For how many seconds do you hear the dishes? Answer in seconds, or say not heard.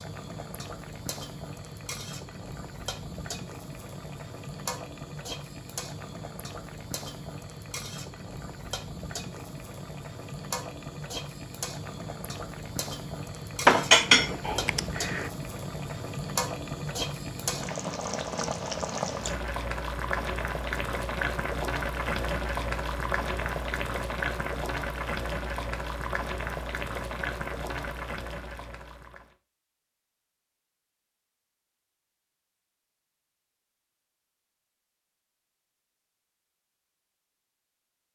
2 s.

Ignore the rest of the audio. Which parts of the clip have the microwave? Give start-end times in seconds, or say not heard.
not heard.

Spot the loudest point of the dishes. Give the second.
14 s.